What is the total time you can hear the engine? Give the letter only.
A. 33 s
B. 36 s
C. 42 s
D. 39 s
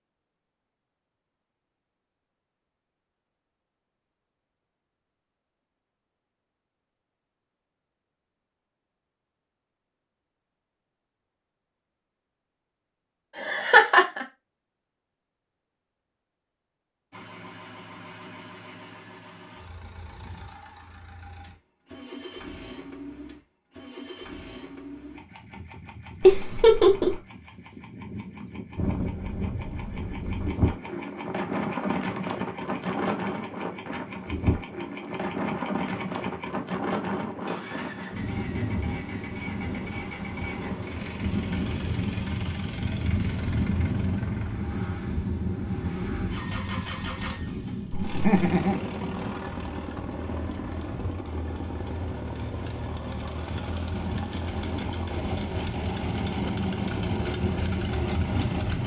C.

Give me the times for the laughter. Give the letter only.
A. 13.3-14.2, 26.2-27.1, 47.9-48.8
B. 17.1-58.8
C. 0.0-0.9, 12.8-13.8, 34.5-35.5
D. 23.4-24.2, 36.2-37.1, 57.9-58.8
A.